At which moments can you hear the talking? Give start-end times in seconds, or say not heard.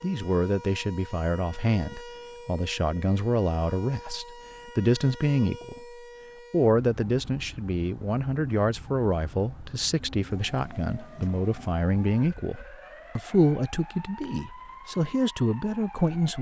0.0-5.8, 6.5-16.3.